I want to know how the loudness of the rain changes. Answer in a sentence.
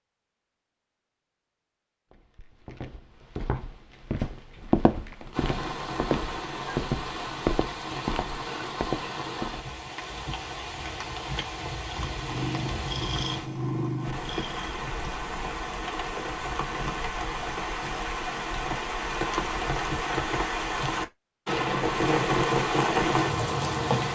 The loudness of the rain goes up.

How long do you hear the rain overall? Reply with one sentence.
You can hear the rain for 19 seconds altogether.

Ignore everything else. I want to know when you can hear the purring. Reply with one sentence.
The purring can be heard from 12.1 to 14.8 s.